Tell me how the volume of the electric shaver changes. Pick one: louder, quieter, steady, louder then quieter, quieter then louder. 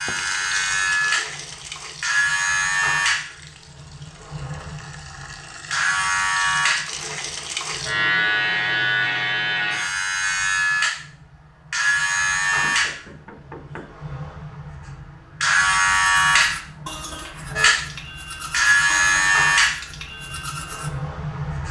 steady.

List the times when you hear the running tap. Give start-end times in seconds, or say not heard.
0.0-8.0.